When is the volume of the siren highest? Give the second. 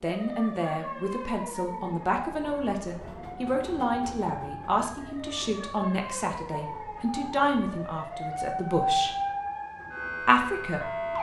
9 s.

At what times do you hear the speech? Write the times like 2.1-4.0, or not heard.
0.0-9.1, 10.2-10.9.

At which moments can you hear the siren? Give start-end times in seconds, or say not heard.
0.0-11.1.